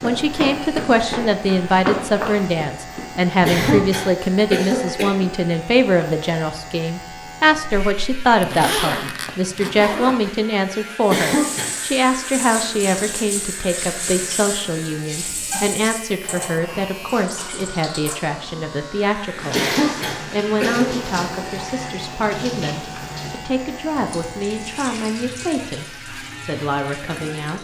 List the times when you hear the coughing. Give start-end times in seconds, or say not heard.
3.4-5.2, 11.1-11.7, 19.5-20.9.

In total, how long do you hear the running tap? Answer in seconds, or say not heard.
16 s.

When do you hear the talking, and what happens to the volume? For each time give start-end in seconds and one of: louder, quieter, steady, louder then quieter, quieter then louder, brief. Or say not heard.
0.0-27.5 quieter.